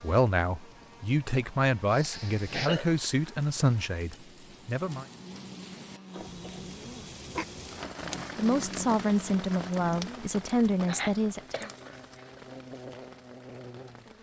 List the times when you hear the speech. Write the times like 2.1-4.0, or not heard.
0.0-5.0, 8.3-11.7.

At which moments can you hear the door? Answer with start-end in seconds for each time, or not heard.
not heard.